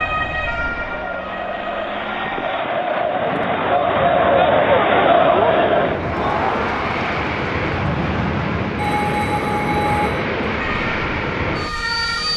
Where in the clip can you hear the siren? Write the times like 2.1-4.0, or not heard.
0.0-2.6, 10.6-12.3.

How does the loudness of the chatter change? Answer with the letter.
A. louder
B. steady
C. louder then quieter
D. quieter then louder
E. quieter
C.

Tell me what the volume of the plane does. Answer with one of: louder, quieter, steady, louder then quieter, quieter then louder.
louder.